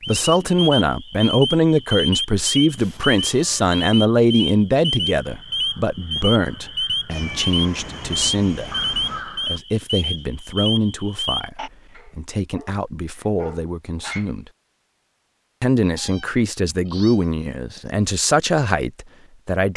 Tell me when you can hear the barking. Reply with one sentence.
The barking can be heard from 11.9 to 14.3 s.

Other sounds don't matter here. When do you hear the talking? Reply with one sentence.
You can hear the talking from 0.0 to 8.8 s, from 9.4 to 14.4 s and from 15.6 to 19.7 s.